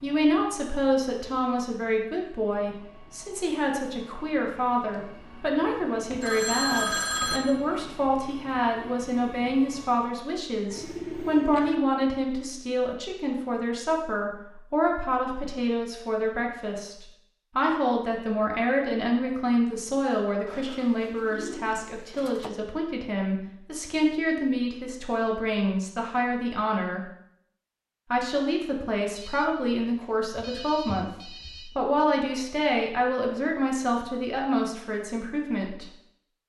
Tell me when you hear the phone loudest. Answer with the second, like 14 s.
7 s.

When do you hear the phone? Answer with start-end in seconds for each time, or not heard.
6.1-7.4, 29.1-31.7.